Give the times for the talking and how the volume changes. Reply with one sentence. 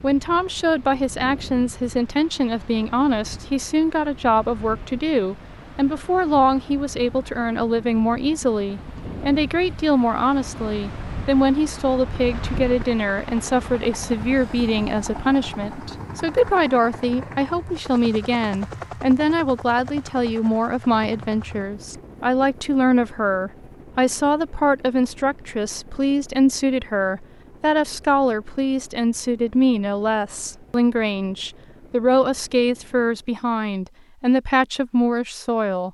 You can hear the talking from 0.0 to 35.8 s, at a steady volume.